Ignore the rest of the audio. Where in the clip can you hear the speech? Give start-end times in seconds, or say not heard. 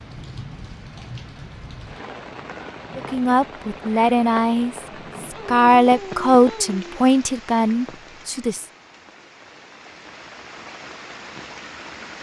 3.0-8.7.